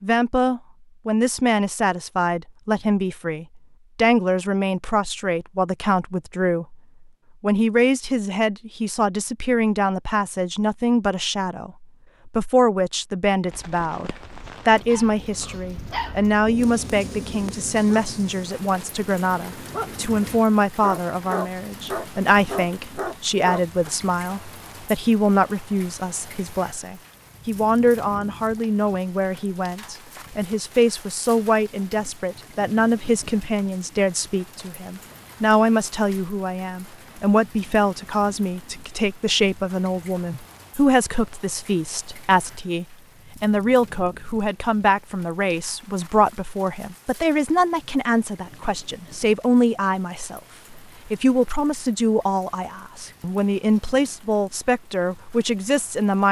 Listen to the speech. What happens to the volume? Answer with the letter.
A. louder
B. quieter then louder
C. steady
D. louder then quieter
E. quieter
C.